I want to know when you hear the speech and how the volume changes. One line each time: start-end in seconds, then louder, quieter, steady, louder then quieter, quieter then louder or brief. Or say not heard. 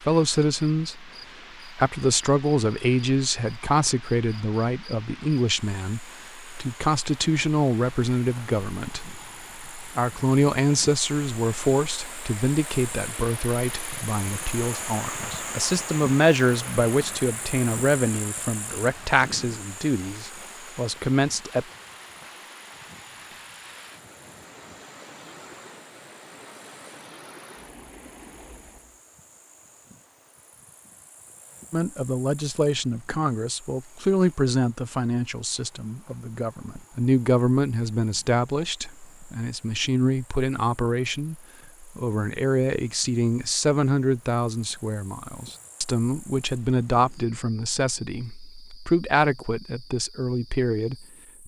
0.1-1.1 brief
1.7-21.6 steady
31.7-51.4 steady.